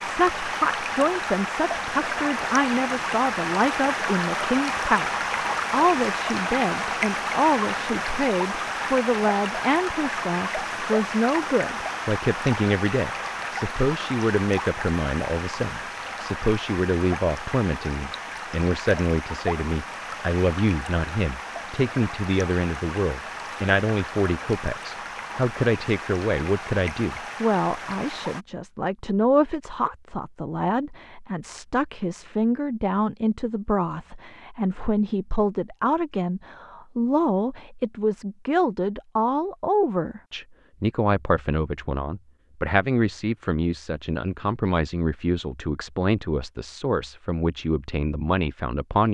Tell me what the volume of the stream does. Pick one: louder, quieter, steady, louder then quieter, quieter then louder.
quieter.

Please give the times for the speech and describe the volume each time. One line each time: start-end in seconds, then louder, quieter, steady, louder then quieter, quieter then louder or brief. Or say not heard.
0.0-49.0 steady.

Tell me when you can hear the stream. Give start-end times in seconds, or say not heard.
0.0-28.4.